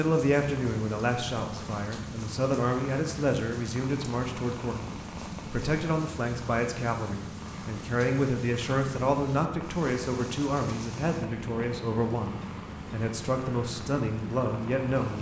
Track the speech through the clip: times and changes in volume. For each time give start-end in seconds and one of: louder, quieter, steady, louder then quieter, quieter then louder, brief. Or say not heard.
0.0-15.1 steady.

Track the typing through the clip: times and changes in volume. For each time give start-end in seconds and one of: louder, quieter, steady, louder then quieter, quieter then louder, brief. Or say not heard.
not heard.